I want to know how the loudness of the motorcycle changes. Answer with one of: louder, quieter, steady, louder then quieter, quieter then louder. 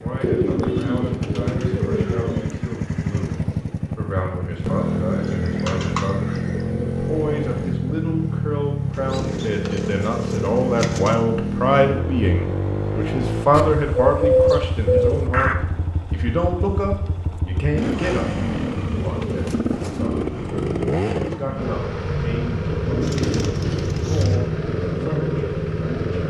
steady.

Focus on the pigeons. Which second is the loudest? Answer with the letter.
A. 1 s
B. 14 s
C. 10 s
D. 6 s
B.